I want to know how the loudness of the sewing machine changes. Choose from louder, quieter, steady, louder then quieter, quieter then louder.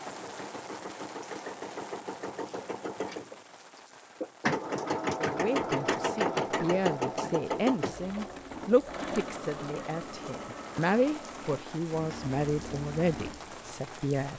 louder then quieter.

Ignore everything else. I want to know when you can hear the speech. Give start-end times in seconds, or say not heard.
5.2-14.3.